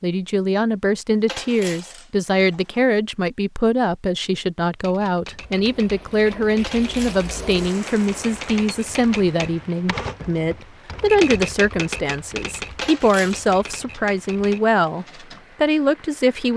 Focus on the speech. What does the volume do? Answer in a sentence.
The volume of the speech stays about the same.